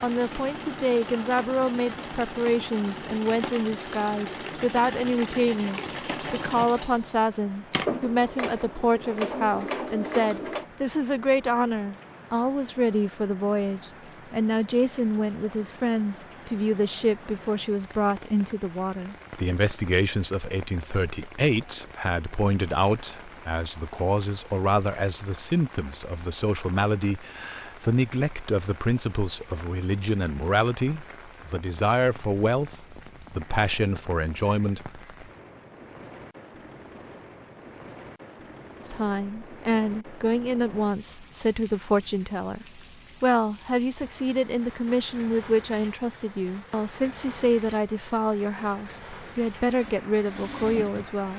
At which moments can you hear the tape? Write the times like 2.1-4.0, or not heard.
not heard.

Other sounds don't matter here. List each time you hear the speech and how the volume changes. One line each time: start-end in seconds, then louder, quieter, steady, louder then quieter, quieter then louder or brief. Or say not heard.
0.0-35.0 steady
38.9-51.3 steady.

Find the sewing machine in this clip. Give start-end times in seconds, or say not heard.
0.0-10.7, 49.8-51.3.